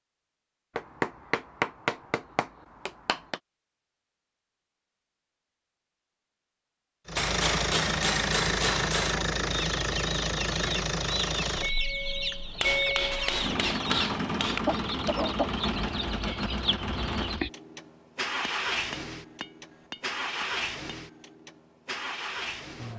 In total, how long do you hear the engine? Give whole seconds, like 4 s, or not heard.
16 s.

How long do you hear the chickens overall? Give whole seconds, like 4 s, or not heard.
8 s.